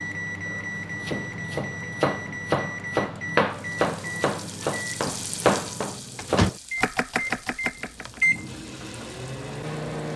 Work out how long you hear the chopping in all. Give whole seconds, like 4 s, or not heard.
7 s.